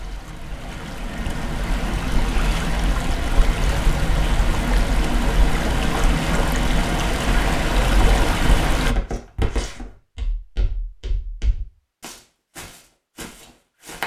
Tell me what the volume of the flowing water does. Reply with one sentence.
The loudness of the flowing water goes up.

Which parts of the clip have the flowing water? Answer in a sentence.
The flowing water can be heard from 0.0 to 8.9 s.